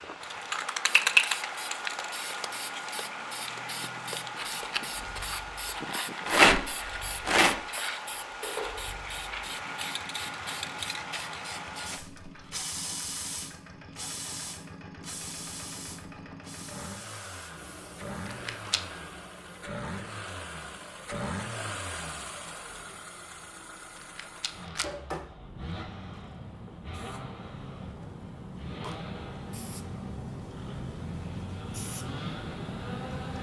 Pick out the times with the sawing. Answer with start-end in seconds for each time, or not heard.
not heard.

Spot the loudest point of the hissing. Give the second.
1 s.